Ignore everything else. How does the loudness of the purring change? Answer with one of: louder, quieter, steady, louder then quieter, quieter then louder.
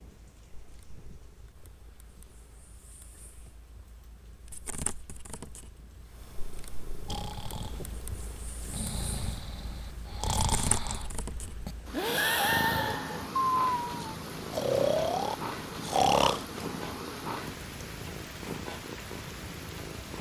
louder.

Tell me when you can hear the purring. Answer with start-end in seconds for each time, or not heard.
0.0-20.1.